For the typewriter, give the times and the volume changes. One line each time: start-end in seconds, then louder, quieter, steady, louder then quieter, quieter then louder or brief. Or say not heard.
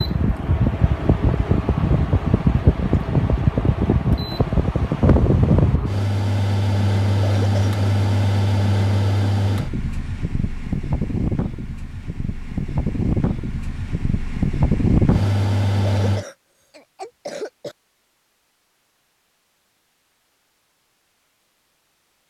not heard.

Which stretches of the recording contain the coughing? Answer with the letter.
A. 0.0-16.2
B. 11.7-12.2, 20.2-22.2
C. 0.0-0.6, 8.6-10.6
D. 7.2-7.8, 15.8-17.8
D.